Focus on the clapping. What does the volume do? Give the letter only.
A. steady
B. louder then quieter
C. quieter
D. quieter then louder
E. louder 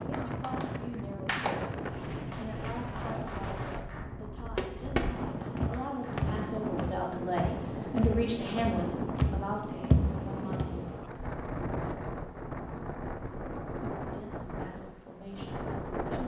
C.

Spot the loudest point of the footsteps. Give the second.
10 s.